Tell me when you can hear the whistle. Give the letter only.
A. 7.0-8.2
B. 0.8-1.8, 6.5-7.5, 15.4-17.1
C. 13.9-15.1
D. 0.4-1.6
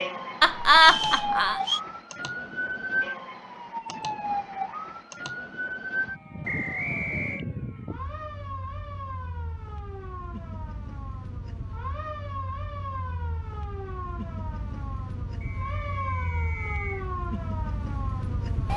B.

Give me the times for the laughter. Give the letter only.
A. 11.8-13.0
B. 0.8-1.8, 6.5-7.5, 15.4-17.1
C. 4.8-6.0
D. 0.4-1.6
D.